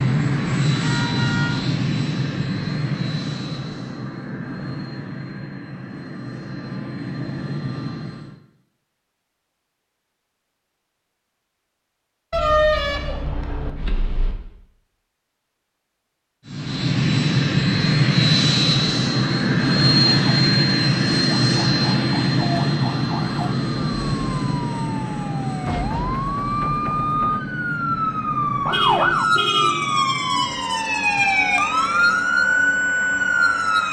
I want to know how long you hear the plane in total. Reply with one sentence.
You can hear the plane for 26 seconds altogether.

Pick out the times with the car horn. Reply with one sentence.
The car horn can be heard from 0.8 to 1.6 s, from 12.3 to 14.3 s and from 28.7 to 30.0 s.